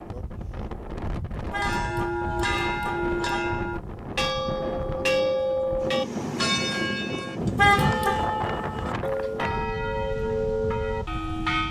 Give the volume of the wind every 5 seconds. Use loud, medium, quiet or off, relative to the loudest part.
loud, loud, medium.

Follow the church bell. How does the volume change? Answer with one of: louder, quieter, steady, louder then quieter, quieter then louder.
steady.